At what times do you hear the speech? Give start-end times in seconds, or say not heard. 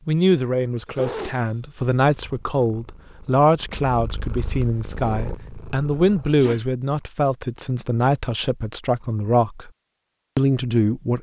0.1-9.7, 10.3-11.1.